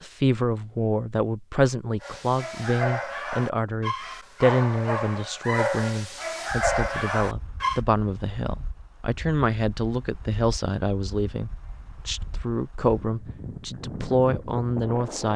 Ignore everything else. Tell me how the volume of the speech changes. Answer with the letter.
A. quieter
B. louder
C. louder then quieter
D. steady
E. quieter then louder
D.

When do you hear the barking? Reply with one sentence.
You can hear the barking from 2.0 to 7.8 s.